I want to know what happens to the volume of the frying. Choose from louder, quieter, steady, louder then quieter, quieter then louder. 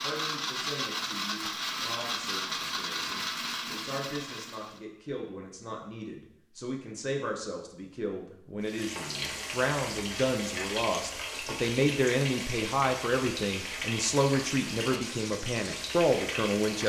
steady.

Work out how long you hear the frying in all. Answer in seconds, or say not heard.
8 s.